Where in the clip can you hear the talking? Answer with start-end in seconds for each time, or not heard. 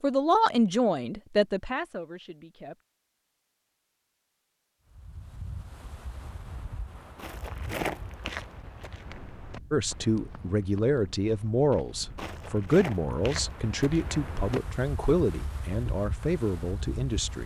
0.0-2.8, 9.7-17.4.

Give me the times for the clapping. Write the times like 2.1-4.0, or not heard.
not heard.